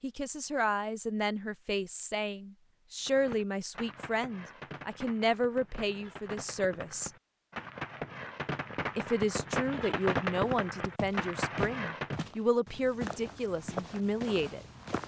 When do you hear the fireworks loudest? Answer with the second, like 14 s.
10 s.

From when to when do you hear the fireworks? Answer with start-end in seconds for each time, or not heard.
3.0-12.2.